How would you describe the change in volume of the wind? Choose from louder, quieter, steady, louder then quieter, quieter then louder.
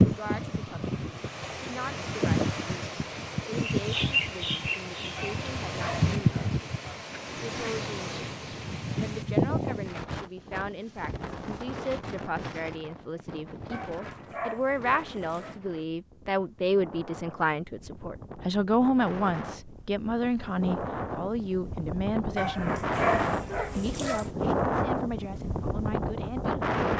quieter then louder.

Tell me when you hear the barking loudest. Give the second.
23 s.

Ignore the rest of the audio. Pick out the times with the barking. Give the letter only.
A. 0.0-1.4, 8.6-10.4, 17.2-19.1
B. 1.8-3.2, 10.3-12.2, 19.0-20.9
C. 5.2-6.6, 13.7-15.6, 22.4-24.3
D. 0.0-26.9
C.